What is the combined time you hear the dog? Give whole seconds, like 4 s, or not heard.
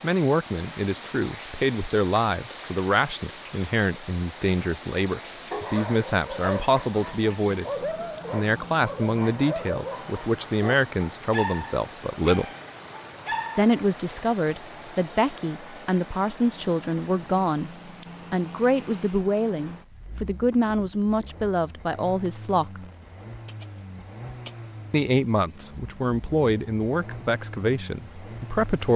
9 s.